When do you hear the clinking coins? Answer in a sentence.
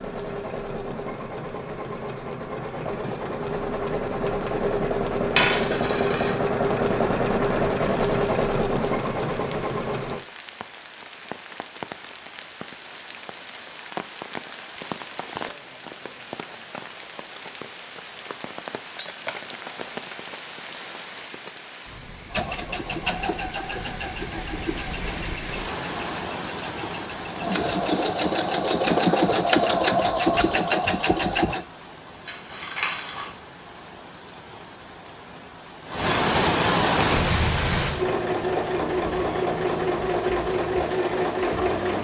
You can hear the clinking coins from 5.3 to 6.3 s and from 32.2 to 33.4 s.